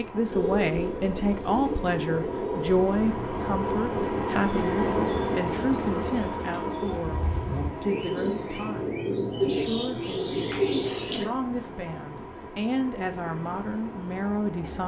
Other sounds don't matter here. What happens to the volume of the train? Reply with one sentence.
The volume of the train goes up, then down.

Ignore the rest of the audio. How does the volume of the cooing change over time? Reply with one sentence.
The volume of the cooing goes down, then up.